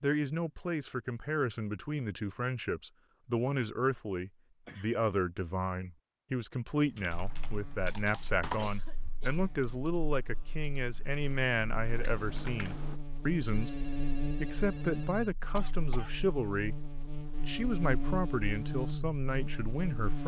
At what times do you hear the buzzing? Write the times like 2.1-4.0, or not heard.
7.1-20.2.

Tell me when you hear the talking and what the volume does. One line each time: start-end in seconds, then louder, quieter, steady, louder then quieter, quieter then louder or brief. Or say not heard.
0.0-20.2 steady.